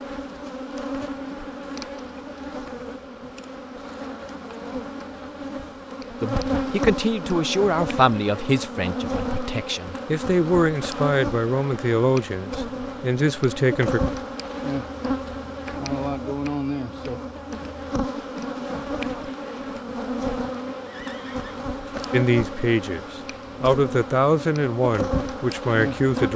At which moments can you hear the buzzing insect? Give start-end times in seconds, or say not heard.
0.0-26.3.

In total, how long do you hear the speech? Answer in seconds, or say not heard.
12 s.